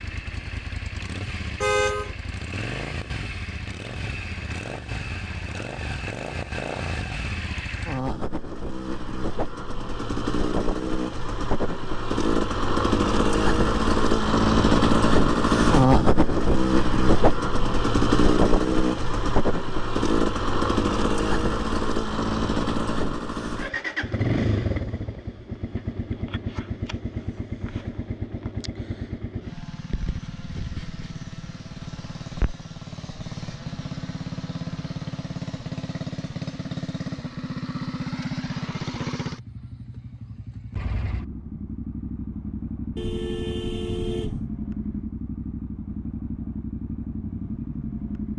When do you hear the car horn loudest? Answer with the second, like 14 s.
2 s.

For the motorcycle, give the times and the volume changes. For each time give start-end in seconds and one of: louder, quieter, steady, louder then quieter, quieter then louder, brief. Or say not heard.
0.0-48.3 louder then quieter.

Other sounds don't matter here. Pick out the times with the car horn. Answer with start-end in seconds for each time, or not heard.
1.6-2.1, 43.0-44.5.